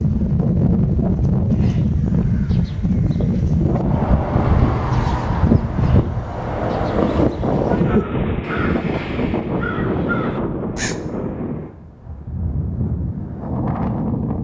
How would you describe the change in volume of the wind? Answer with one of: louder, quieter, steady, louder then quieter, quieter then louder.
quieter.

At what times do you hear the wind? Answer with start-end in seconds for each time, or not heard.
0.0-14.3.